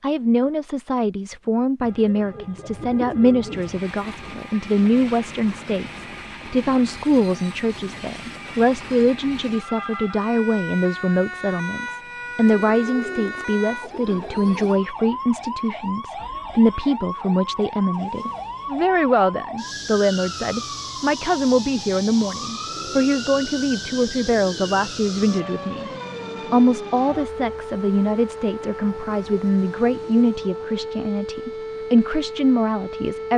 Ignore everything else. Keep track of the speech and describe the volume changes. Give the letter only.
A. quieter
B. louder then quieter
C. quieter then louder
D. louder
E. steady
E.